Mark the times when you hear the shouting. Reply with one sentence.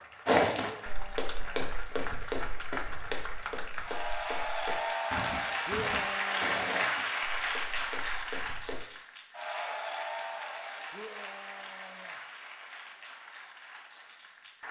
The shouting can be heard from 0.6 to 1.8 s, from 5.7 to 6.9 s and from 10.9 to 12.2 s.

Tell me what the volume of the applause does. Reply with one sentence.
The volume of the applause goes up, then down.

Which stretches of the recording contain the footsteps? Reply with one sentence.
You can hear the footsteps from 0.2 to 8.8 s.